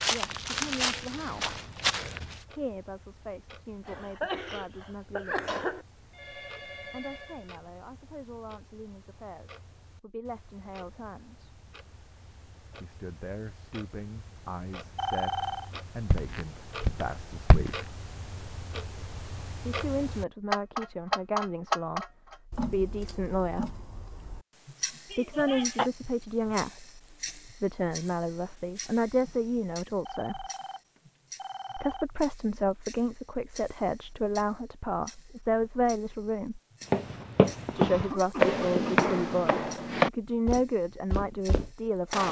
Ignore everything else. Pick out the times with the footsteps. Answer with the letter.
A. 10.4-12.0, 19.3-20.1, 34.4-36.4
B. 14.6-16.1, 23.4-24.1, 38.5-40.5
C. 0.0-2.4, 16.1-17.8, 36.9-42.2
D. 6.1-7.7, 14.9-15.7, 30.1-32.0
C.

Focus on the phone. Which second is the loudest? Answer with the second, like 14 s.
15 s.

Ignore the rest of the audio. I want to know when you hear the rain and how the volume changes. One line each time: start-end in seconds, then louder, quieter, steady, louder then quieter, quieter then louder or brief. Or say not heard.
not heard.